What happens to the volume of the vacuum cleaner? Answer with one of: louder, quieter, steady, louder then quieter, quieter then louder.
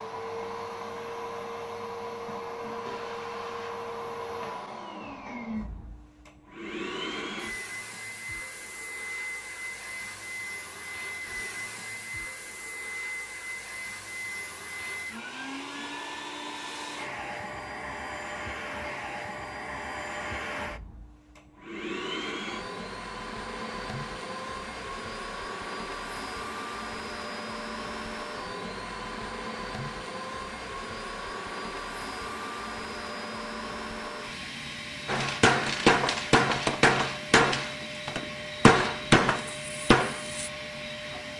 steady.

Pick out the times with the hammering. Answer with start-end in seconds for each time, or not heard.
35.0-40.5.